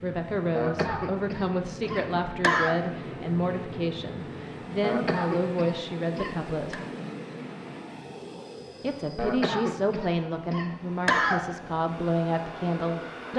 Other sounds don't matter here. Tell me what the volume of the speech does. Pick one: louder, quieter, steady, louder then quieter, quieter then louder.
steady.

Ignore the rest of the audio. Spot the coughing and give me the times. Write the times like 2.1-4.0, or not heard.
0.6-2.8, 4.8-6.8, 9.2-11.4.